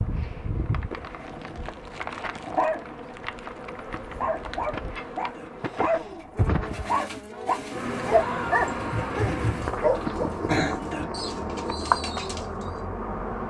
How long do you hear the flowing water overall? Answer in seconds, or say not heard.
not heard.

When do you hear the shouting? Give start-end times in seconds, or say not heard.
8.1-9.3.